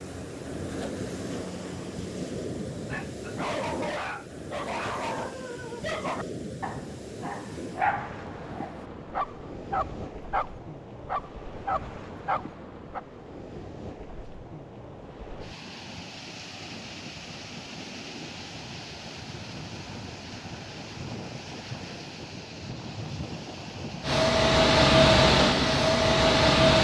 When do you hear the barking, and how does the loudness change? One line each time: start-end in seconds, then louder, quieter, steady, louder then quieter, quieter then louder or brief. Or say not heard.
2.7-13.0 steady.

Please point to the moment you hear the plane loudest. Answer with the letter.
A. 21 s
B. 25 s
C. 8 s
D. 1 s
B.